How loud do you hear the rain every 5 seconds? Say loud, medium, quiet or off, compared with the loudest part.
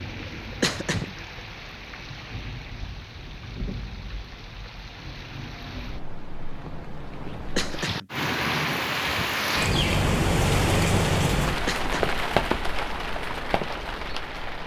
quiet, loud, loud.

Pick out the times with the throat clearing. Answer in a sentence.
You can hear the throat clearing from 0.6 to 1.1 s, from 7.5 to 8.1 s and from 11.7 to 12.2 s.